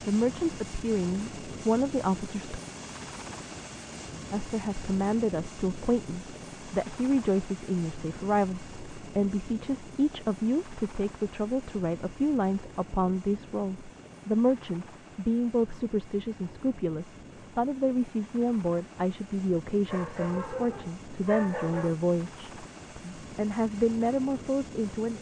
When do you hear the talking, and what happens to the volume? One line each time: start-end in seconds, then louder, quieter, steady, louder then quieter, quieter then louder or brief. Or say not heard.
0.1-2.6 brief
4.3-25.1 steady.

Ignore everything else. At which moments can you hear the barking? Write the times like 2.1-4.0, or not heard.
19.9-21.9.